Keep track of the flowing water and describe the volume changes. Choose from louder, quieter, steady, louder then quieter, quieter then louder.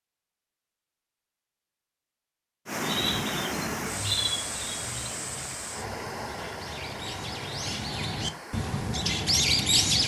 quieter.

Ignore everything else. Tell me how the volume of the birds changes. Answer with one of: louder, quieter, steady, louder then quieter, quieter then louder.
quieter then louder.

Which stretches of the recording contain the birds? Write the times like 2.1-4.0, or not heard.
2.8-10.0.